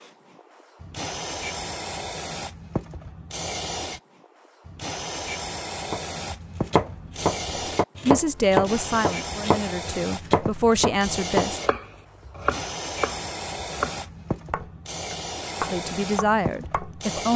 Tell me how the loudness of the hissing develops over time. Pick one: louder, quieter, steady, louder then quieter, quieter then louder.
steady.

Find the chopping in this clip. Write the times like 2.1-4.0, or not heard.
5.9-16.9.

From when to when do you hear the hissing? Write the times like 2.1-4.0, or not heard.
0.0-17.3.